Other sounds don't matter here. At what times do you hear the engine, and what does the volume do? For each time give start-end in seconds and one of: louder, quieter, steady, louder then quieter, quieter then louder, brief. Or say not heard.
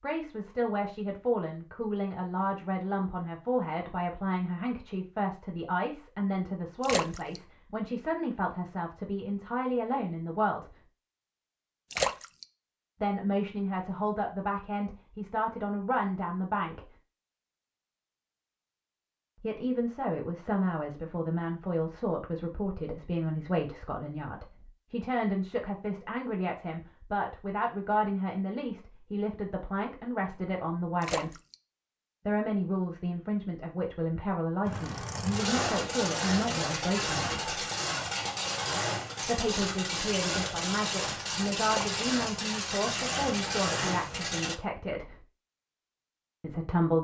34.6-44.5 steady.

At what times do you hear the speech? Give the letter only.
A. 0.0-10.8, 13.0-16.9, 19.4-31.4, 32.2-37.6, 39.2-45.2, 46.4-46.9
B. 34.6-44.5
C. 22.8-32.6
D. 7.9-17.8
A.